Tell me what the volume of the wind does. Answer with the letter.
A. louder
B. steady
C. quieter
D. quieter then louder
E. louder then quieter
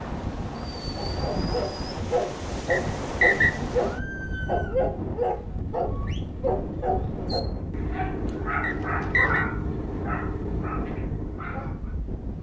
B.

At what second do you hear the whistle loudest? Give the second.
3 s.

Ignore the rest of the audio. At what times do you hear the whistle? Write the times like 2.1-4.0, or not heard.
2.7-3.5, 8.6-9.4.